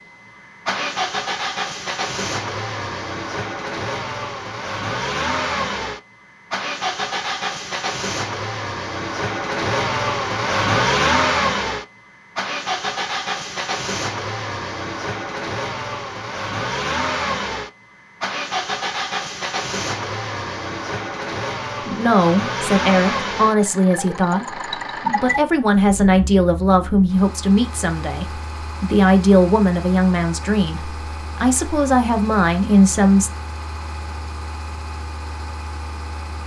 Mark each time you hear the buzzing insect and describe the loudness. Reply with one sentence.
You can't hear the buzzing insect here.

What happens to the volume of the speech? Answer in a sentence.
The volume of the speech stays about the same.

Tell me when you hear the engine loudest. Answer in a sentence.
The volume of the engine peaks at 11 seconds.